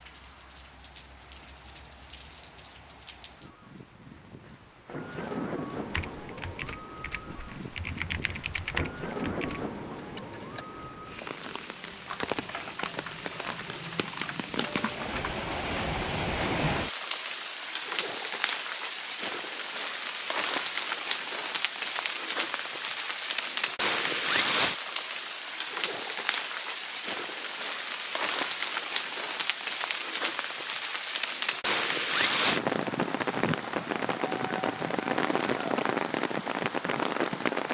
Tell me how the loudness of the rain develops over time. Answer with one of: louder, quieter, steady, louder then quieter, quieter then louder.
louder.